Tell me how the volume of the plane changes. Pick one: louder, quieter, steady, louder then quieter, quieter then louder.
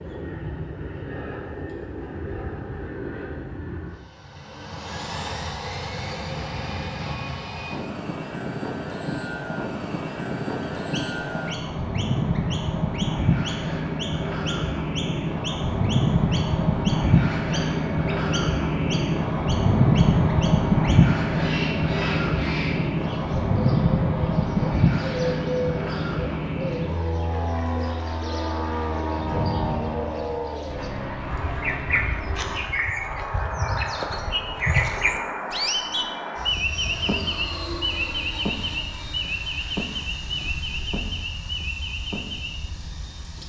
louder then quieter.